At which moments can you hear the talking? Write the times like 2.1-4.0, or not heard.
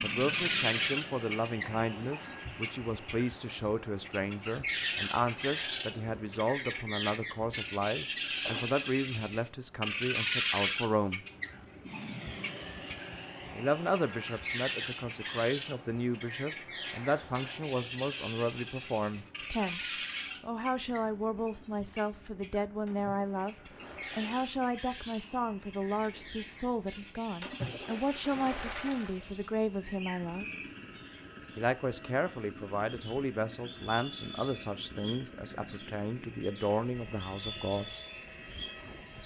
0.0-11.2, 13.5-19.8, 20.4-30.4, 31.6-38.0.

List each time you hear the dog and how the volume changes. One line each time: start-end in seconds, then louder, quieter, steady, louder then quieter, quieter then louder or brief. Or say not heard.
not heard.